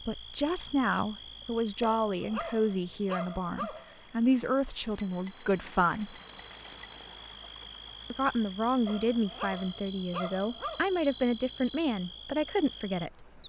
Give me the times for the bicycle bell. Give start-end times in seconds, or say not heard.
1.8-2.5, 5.0-7.2, 9.6-11.9.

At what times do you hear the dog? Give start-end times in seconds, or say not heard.
1.8-4.0, 8.8-10.8.